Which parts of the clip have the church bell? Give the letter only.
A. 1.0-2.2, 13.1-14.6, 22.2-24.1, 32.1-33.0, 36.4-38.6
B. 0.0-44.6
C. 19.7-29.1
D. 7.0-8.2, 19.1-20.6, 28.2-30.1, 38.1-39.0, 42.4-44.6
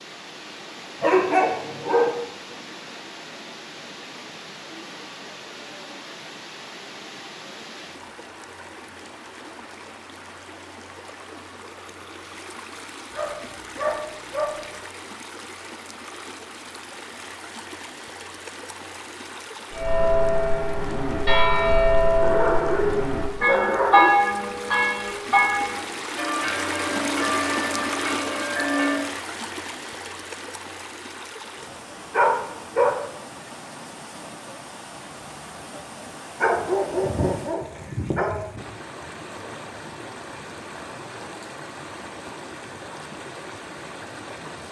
C.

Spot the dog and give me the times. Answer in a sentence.
You can hear the dog from 1.0 to 2.2 s, from 13.1 to 14.6 s, from 22.2 to 24.1 s, from 32.1 to 33.0 s and from 36.4 to 38.6 s.